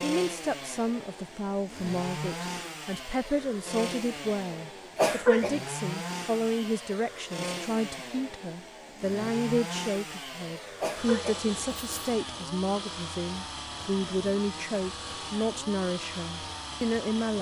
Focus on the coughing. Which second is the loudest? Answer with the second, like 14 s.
5 s.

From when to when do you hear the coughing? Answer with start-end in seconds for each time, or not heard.
5.0-5.5, 10.8-11.9.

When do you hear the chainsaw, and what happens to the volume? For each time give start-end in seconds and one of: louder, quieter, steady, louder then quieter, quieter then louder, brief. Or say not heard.
0.0-17.3 steady.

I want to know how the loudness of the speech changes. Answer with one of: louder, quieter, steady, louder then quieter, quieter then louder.
steady.